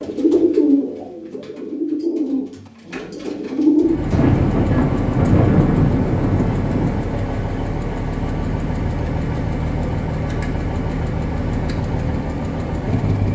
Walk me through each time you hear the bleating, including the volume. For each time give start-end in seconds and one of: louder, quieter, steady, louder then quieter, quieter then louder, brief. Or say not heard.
not heard.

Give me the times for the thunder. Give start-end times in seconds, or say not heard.
4.1-7.2.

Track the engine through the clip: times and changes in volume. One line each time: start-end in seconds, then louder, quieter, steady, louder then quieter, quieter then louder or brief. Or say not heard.
3.8-13.3 steady.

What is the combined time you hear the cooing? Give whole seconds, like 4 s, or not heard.
4 s.